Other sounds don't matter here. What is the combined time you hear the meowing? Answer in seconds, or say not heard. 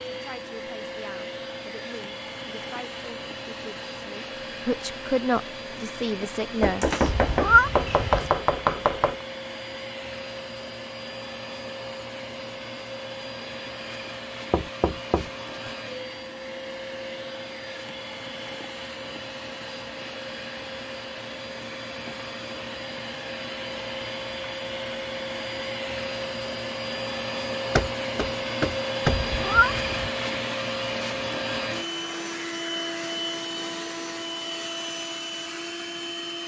2 s.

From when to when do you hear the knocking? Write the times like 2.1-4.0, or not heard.
6.6-9.2, 14.5-15.7, 27.8-29.2.